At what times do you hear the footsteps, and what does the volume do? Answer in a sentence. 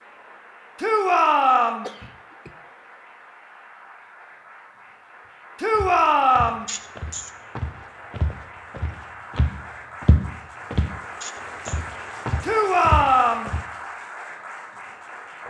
The footsteps can be heard from 5.7 to 10.9 s, getting louder; and briefly from 11.7 to 13.6 s.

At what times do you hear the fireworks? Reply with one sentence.
The fireworks can't be heard in this clip.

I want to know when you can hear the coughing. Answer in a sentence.
The coughing can be heard from 1.8 to 2.5 s, from 6.7 to 7.3 s and from 11.2 to 11.8 s.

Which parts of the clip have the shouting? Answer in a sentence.
The shouting can be heard from 0.8 to 1.9 s, from 5.6 to 6.7 s and from 12.4 to 13.5 s.